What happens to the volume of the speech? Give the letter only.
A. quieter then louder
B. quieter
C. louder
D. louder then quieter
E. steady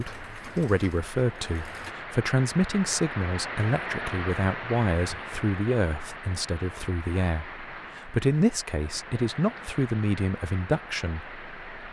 E.